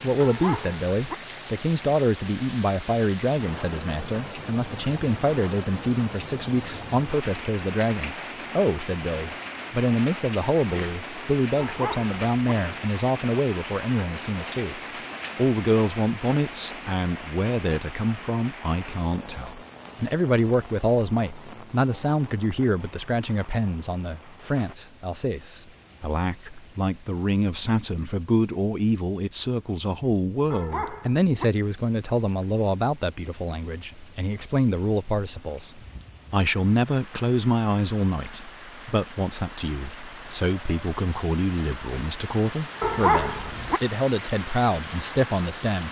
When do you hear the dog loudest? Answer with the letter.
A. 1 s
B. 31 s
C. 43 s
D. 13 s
C.